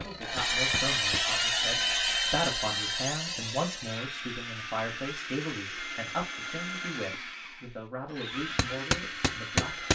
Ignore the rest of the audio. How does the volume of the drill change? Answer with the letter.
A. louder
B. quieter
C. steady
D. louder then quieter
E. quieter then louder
B.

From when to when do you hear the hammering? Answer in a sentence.
You can hear the hammering from 0.0 to 1.8 s and from 8.6 to 9.9 s.